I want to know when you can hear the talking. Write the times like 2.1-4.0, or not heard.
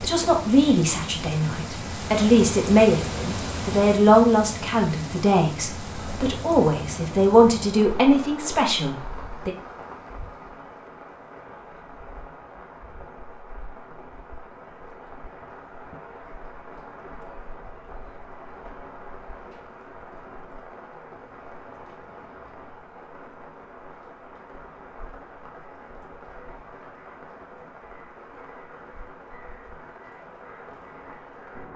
0.0-9.5.